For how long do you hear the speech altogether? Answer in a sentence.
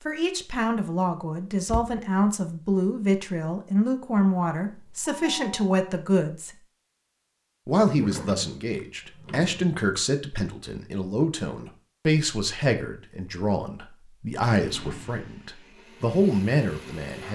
The speech can be heard for 16 seconds in total.